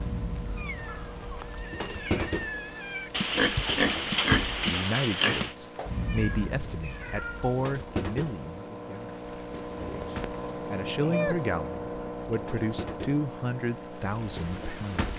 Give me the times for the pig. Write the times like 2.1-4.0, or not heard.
3.1-5.5, 9.8-11.3.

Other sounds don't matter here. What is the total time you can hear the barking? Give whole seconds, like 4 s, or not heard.
not heard.